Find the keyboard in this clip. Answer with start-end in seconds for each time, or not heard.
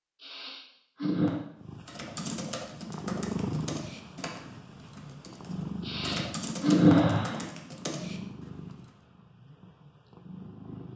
1.9-8.8.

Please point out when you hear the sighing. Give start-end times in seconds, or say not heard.
0.2-1.4, 5.8-7.5.